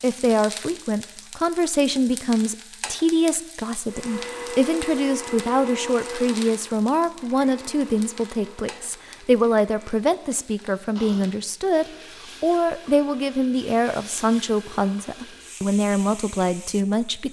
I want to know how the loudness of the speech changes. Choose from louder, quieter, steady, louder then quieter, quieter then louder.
steady.